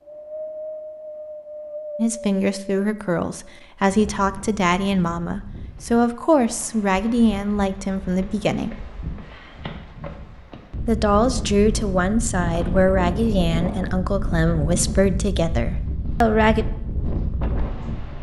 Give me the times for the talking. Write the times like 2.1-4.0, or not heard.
1.9-8.8, 10.8-16.6.